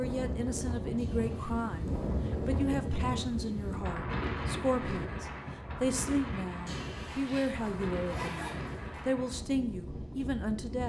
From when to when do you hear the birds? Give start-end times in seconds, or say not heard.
not heard.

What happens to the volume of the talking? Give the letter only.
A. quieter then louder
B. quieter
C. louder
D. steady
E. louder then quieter
D.